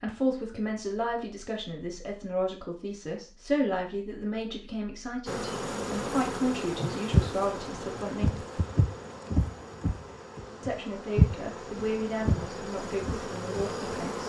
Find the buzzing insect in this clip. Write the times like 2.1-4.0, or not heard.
5.2-14.2.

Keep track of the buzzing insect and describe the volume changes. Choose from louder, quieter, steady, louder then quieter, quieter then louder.
quieter then louder.